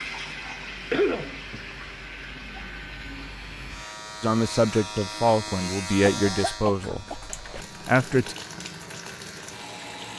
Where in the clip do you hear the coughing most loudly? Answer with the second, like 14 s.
1 s.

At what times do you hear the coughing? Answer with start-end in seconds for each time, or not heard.
0.9-1.6, 6.0-7.7.